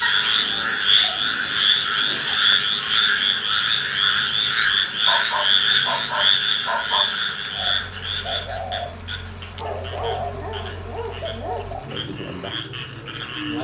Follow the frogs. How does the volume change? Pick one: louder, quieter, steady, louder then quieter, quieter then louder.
quieter.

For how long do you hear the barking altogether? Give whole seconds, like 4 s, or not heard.
7 s.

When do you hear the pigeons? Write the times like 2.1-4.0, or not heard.
7.5-13.5.